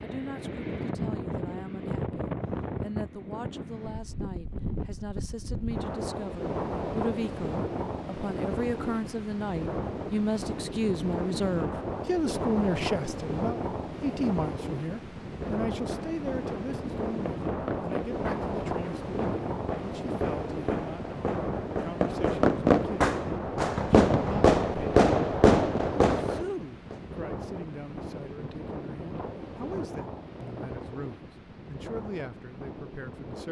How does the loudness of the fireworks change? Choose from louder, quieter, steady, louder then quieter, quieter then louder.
louder.